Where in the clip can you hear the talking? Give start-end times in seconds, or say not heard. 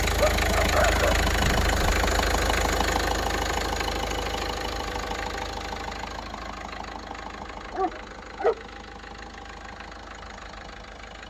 not heard.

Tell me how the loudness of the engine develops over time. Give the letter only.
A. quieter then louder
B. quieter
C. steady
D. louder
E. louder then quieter
B.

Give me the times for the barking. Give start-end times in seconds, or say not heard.
0.1-2.0, 7.7-8.6.